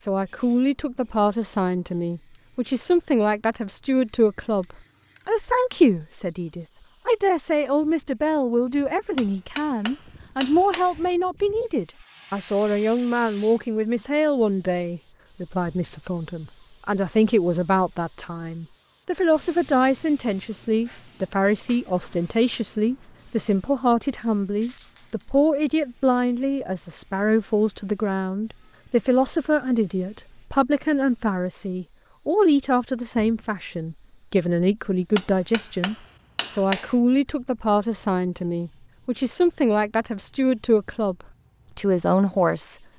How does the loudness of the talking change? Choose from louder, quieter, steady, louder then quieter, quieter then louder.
steady.